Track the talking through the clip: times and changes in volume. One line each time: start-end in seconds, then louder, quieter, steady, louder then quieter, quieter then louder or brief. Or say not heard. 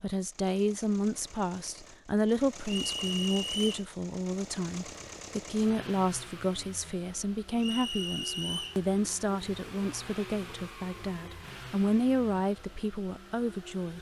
0.0-13.9 steady.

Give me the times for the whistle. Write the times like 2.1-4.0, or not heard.
2.6-3.8, 7.5-8.8.